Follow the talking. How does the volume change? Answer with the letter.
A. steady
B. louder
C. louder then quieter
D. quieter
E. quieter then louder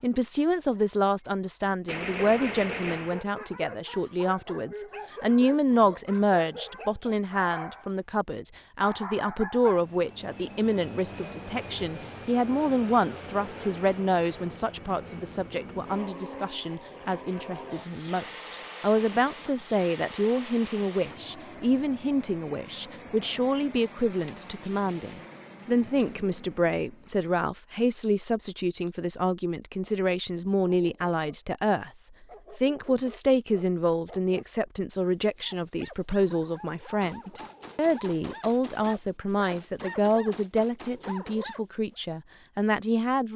A.